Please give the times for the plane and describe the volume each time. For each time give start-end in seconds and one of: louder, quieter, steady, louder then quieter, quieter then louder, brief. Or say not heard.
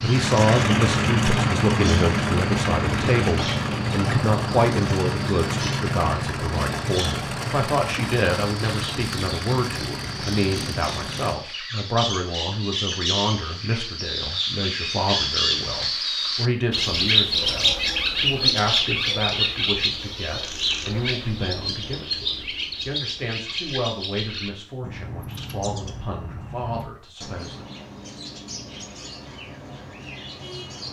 0.0-11.3 quieter.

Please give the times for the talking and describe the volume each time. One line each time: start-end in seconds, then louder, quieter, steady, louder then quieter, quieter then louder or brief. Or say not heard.
0.0-27.6 quieter.